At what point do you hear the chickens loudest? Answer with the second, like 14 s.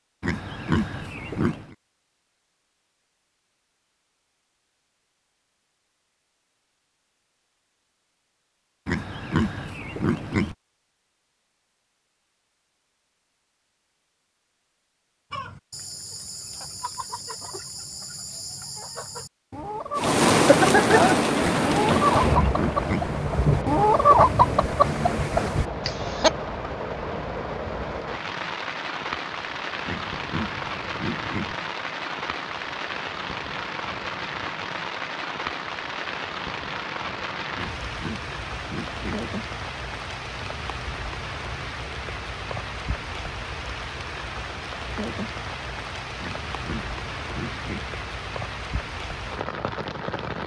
24 s.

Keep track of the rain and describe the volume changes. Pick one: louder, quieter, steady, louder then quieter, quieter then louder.
quieter.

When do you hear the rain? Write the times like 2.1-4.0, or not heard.
19.9-50.4.